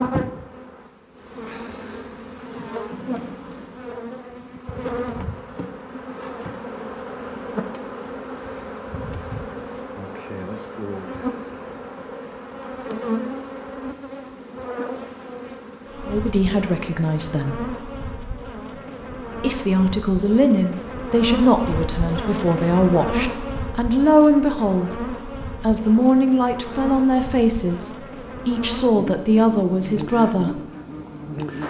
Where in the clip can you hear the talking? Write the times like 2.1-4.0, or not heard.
16.1-17.6, 19.4-30.6.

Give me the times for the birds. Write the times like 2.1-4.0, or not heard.
not heard.